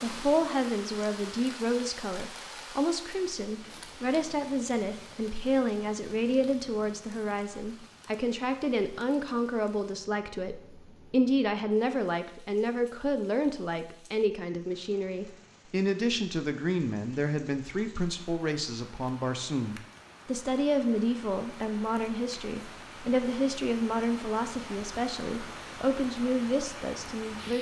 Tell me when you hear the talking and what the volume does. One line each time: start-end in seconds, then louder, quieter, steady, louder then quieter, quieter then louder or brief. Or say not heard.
0.0-27.5 steady.